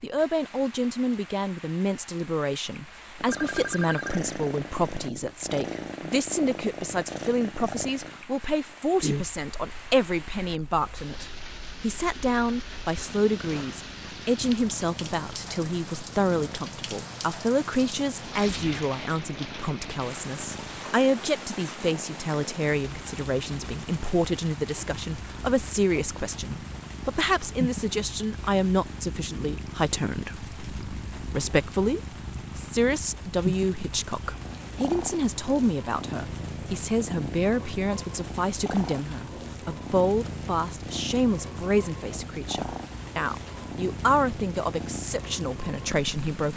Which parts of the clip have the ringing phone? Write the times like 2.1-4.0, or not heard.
3.2-4.2.